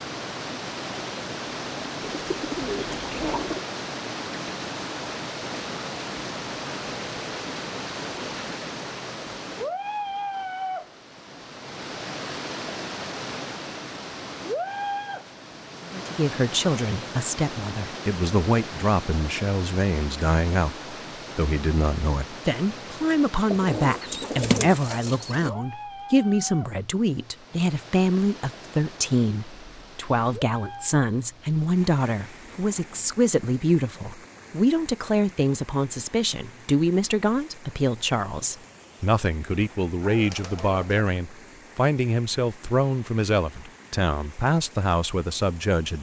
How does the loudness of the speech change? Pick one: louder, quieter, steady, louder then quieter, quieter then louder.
steady.